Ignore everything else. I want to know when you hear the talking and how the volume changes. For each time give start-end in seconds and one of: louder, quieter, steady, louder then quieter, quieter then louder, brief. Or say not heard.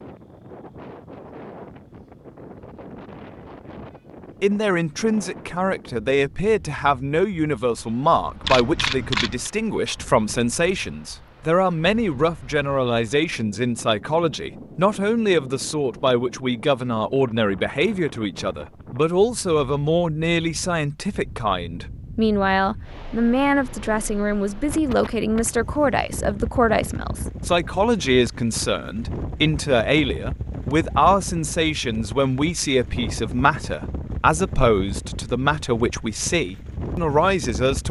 4.4-37.8 steady.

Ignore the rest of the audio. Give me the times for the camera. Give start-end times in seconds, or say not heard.
8.4-9.5.